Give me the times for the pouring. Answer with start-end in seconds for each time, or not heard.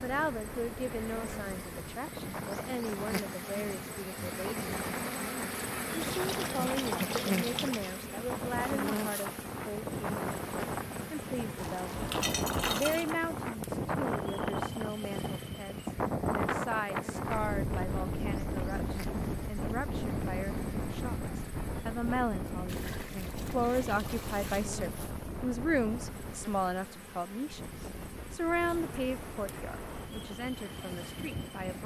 6.0-8.0, 11.6-13.1, 22.6-24.7.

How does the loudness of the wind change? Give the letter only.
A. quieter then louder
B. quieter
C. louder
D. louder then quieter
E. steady
D.